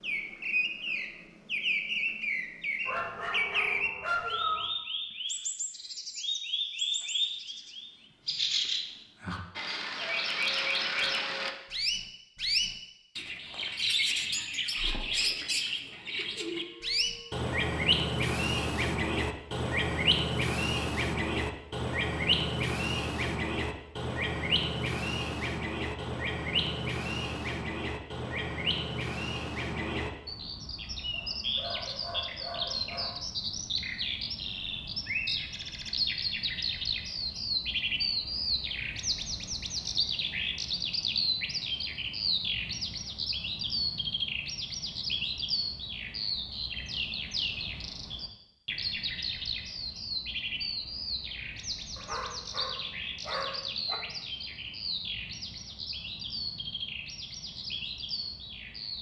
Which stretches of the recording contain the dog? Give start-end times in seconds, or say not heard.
2.9-4.7, 31.1-33.1, 52.0-54.0.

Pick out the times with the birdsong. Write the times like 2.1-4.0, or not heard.
0.0-58.9.